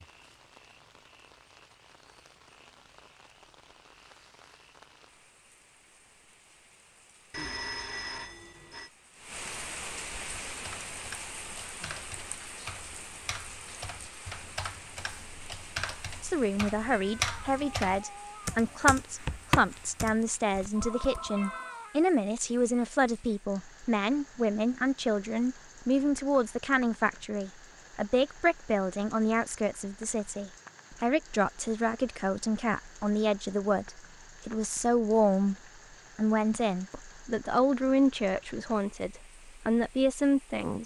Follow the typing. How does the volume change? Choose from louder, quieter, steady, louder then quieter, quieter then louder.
louder.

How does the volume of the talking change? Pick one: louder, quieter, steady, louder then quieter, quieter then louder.
steady.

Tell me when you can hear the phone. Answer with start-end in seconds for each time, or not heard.
7.3-8.9, 20.7-21.9.